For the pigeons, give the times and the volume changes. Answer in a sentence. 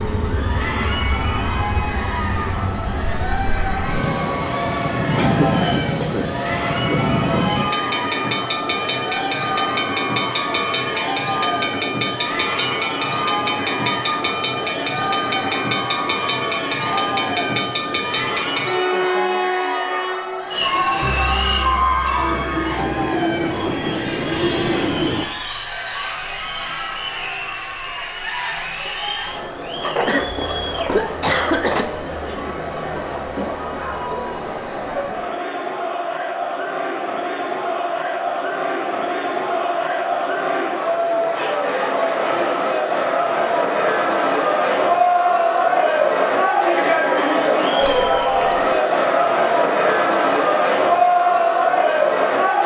You can't hear the pigeons here.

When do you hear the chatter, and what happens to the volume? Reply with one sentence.
The chatter can be heard from 0.2 to 52.6 s, getting louder.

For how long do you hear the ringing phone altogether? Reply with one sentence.
You can hear the ringing phone for 2 seconds altogether.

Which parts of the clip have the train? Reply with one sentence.
You can hear the train from 0.0 to 25.2 s.